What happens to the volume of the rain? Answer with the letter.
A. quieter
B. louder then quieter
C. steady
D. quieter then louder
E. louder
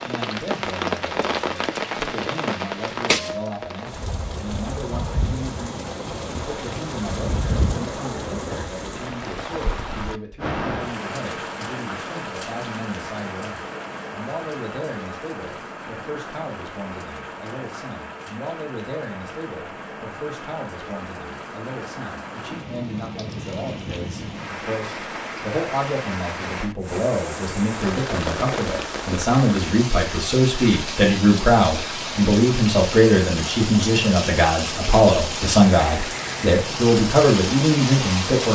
D.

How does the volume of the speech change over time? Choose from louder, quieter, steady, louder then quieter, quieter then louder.
louder.